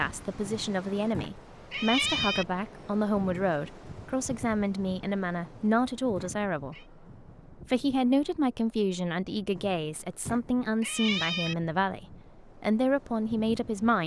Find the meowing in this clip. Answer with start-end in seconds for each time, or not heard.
0.5-2.5, 5.5-6.8, 9.6-11.6.